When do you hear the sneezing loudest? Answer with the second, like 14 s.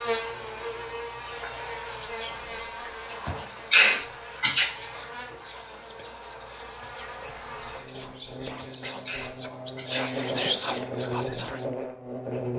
4 s.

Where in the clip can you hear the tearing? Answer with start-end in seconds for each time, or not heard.
not heard.